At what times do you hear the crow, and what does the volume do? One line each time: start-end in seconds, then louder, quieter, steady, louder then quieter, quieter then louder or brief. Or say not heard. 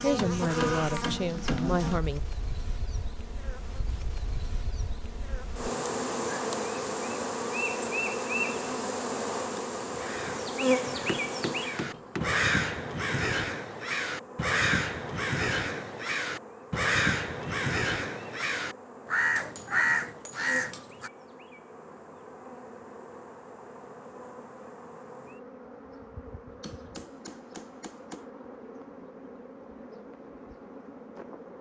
9.9-21.1 louder.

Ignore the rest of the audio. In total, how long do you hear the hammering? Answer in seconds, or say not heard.
6 s.